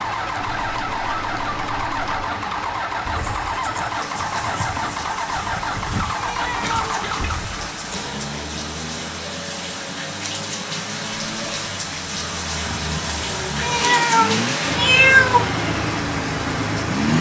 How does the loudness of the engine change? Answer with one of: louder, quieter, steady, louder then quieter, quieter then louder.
quieter then louder.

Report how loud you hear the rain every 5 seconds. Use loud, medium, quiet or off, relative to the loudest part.
medium, medium, loud, loud.